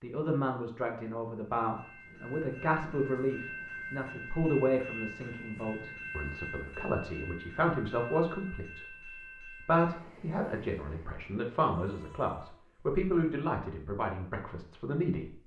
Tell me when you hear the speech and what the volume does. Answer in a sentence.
You can hear the speech from 0.0 to 15.4 s, at a steady volume.